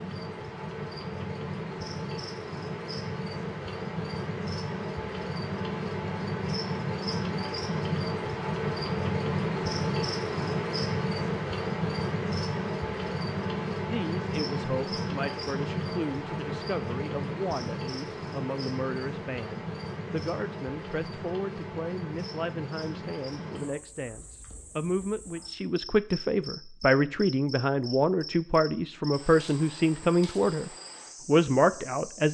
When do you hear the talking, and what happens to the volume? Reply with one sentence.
The talking can be heard from 13.8 to 32.3 s, getting louder.